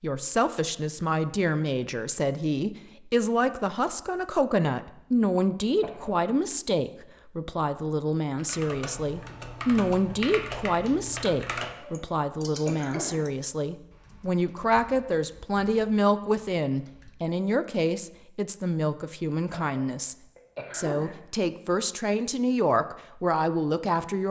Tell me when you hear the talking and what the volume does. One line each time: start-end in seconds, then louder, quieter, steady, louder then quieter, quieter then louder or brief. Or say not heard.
0.0-24.2 steady.